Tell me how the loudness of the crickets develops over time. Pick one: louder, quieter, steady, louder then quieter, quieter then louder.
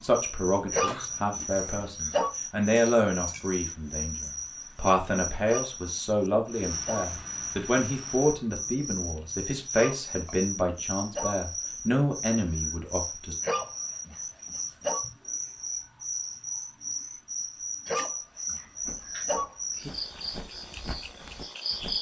steady.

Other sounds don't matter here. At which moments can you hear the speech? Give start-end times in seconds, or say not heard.
0.0-13.3.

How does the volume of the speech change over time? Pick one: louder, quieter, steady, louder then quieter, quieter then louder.
steady.